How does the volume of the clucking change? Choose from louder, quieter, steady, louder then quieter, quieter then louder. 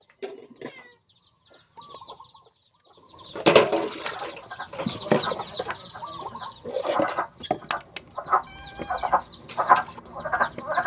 louder then quieter.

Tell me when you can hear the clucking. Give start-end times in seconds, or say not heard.
0.0-10.8.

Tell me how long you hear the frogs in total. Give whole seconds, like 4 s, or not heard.
7 s.